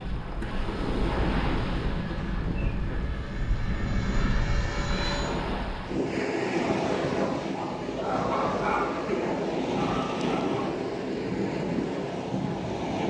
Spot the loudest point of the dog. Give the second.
9 s.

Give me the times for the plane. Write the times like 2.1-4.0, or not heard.
0.0-5.4.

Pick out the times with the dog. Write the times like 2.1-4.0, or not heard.
7.2-10.8.